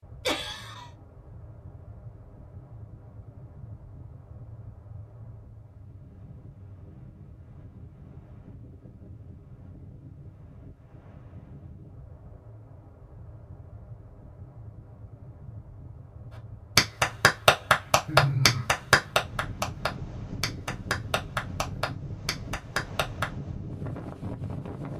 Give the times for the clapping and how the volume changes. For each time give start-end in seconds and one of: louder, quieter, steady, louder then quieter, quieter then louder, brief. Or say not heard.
16.8-23.2 quieter.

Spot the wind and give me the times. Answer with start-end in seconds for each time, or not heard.
0.0-24.9.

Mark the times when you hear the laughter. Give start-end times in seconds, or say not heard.
0.2-0.9, 18.1-18.6.